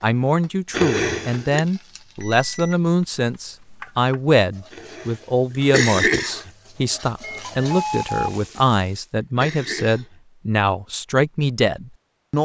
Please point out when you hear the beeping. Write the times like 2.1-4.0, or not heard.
2.1-4.2, 7.2-8.4.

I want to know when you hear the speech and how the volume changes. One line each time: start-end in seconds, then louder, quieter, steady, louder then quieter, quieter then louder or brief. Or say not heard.
0.0-12.3 steady.